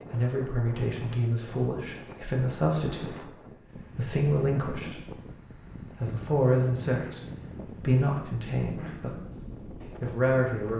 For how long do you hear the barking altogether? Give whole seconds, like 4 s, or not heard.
not heard.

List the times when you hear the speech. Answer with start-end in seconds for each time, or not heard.
0.1-9.2, 10.0-10.7.